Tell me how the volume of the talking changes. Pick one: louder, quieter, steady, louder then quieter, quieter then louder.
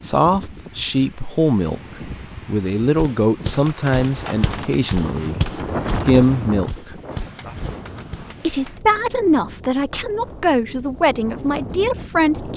steady.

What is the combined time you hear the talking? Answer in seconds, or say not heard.
11 s.